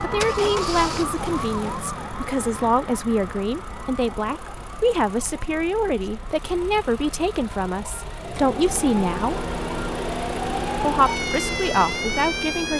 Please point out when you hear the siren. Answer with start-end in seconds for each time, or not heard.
0.0-12.7.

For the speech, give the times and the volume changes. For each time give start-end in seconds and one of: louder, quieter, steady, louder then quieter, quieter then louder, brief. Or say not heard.
0.0-9.4 steady
10.8-12.7 brief.